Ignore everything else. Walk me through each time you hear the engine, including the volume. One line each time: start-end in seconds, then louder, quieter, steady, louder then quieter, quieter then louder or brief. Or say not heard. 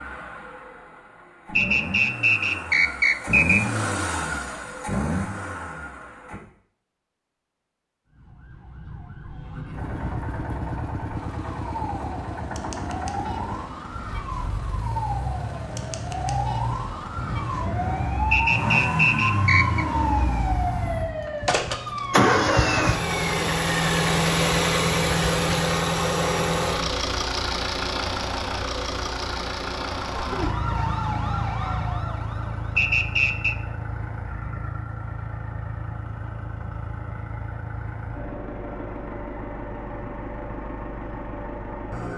0.0-6.4 louder
9.7-42.1 louder then quieter.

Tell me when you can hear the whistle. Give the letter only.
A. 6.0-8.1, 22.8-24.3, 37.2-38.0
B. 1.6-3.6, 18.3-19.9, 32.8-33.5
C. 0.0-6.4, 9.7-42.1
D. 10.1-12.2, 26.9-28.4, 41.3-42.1
B.